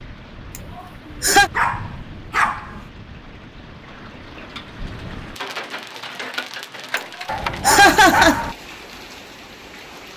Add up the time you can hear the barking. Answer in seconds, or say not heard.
3 s.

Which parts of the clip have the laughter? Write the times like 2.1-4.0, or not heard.
0.8-1.5, 7.0-8.4.